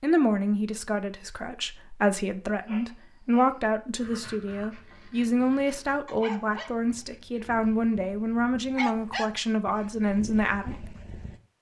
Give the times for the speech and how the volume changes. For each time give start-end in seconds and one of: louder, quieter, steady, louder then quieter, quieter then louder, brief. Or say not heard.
0.0-10.9 steady.